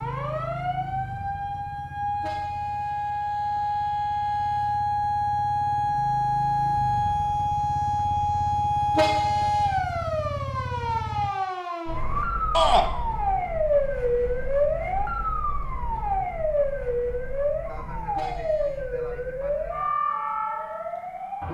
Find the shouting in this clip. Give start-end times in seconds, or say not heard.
12.5-12.9.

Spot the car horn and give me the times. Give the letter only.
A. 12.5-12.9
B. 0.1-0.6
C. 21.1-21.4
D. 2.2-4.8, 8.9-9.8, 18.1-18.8
D.